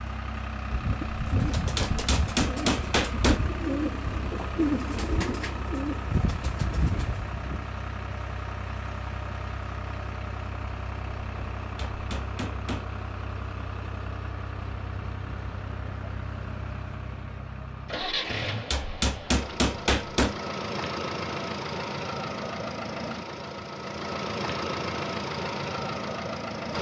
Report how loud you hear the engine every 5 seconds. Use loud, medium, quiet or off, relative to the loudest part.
medium, medium, medium, medium, loud, loud.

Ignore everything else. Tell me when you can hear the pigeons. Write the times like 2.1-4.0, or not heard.
0.7-7.3.